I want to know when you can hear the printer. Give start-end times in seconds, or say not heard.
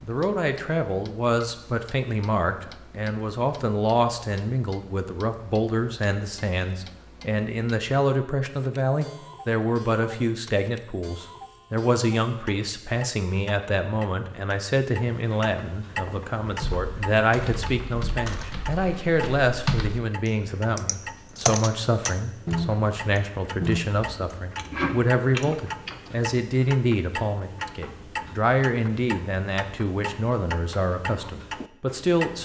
not heard.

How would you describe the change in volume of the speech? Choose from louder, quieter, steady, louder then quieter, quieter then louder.
steady.